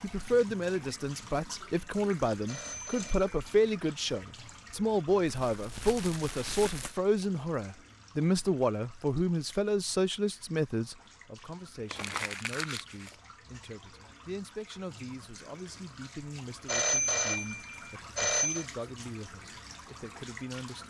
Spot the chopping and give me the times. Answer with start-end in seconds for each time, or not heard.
not heard.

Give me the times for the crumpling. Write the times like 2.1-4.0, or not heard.
5.2-7.0, 11.8-13.2.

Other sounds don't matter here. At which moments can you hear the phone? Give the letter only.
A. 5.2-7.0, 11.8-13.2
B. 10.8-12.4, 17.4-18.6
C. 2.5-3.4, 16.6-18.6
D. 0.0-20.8
C.